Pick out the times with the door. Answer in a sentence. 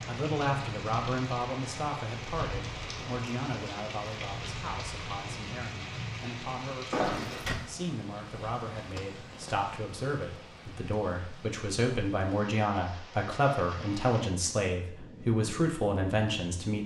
The door can be heard from 6.9 to 7.5 s.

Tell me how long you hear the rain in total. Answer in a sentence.
You can hear the rain for 17 seconds altogether.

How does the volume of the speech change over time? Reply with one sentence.
The volume of the speech goes down, then up.